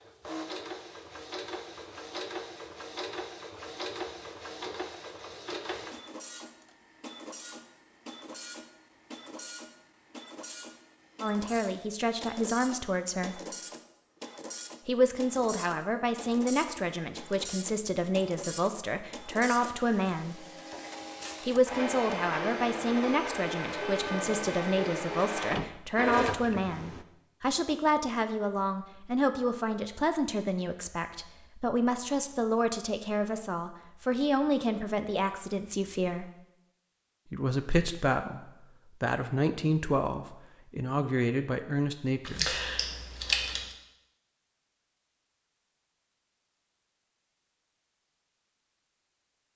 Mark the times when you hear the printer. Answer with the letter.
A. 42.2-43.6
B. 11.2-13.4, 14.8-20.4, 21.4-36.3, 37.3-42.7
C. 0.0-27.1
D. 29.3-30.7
C.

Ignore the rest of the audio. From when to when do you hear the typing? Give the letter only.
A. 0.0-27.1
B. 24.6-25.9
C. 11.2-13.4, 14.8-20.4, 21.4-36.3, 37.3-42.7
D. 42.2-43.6
D.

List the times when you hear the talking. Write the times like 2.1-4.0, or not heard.
11.2-13.4, 14.8-20.4, 21.4-36.3, 37.3-42.7.